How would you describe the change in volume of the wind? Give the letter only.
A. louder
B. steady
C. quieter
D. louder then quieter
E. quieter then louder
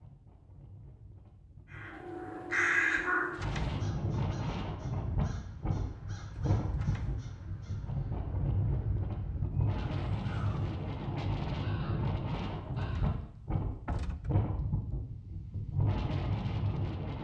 A.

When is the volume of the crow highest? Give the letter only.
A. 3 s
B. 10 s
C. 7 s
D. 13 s
A.